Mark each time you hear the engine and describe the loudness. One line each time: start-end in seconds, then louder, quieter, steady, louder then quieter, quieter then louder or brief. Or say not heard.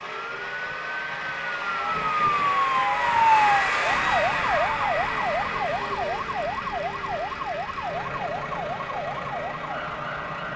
0.0-10.5 louder then quieter.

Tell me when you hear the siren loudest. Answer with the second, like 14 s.
3 s.